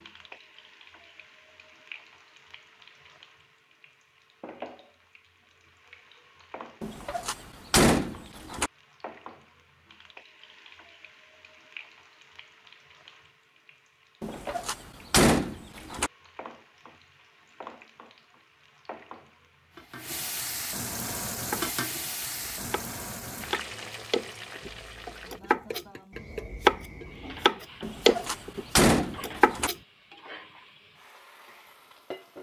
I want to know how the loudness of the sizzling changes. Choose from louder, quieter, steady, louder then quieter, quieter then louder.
louder then quieter.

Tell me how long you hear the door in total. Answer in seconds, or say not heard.
6 s.